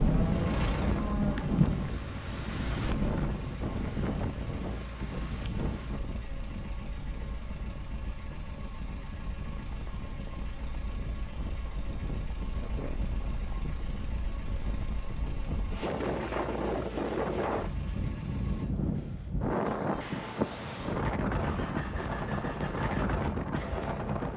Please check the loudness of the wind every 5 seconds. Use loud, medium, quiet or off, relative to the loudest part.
loud, medium, medium, loud, loud.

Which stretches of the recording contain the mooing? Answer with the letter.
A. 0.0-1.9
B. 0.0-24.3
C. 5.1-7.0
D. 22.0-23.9
A.